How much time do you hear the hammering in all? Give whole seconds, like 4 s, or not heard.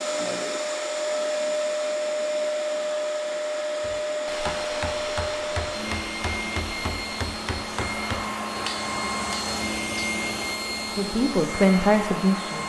7 s.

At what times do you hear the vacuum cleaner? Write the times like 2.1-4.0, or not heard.
0.0-12.6.